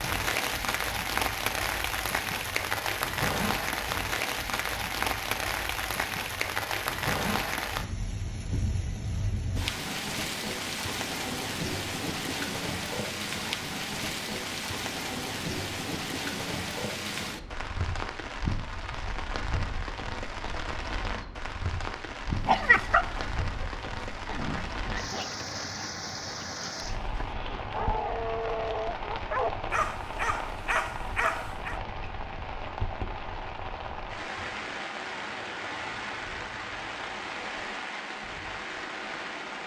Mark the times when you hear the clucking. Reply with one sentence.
The clucking can't be heard in this clip.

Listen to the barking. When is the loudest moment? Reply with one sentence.
The volume of the barking peaks at 23 seconds.